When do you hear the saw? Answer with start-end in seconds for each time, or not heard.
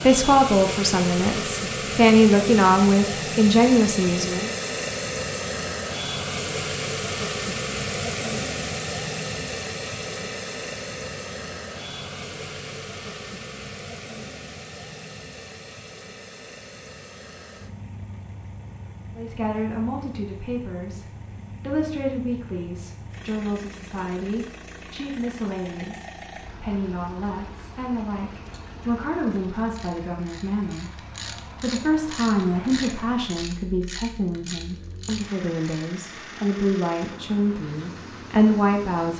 not heard.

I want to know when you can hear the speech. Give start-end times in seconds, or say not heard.
0.0-4.5, 19.1-39.1.